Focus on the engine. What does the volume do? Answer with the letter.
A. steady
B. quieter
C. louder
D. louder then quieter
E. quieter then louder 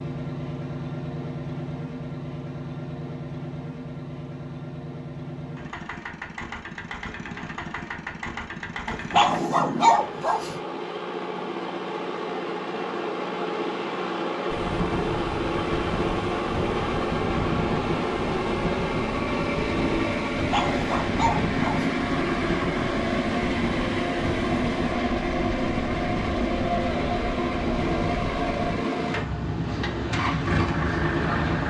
C.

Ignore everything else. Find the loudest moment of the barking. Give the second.
10 s.